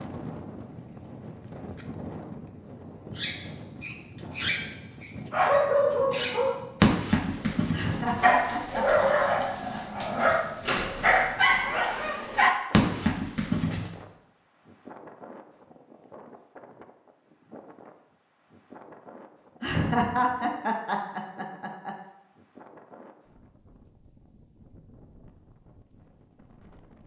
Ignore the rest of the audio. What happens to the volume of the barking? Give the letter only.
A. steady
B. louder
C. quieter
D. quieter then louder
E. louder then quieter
A.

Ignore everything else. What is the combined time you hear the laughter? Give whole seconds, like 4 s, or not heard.
5 s.